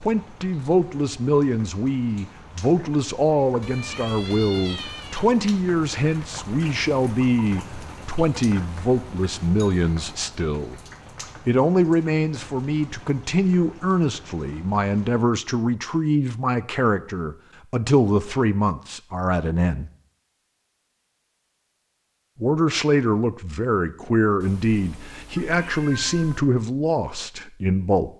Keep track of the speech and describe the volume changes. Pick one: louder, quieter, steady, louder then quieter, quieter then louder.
steady.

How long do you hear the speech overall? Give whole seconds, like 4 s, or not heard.
25 s.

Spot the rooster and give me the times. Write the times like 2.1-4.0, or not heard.
not heard.